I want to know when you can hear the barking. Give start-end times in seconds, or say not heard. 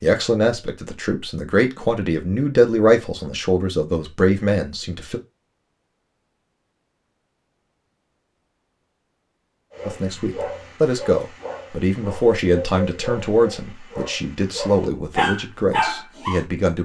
9.7-16.4.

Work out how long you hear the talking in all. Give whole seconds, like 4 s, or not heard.
12 s.